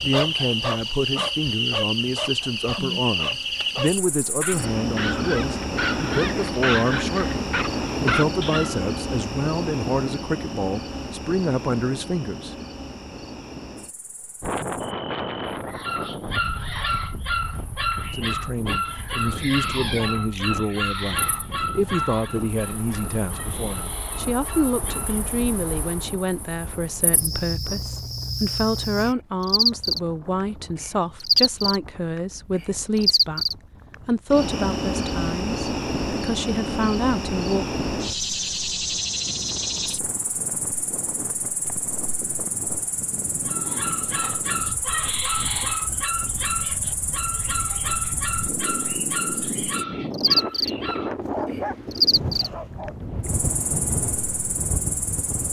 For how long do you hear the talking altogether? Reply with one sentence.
You can hear the talking for 32 seconds altogether.